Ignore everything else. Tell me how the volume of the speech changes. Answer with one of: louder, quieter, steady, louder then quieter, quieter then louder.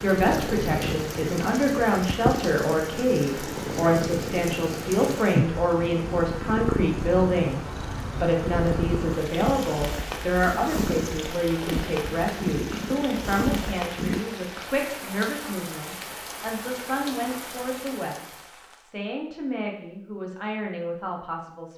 quieter.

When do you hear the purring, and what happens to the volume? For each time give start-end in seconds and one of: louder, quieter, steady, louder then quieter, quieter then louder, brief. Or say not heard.
0.0-14.2 steady.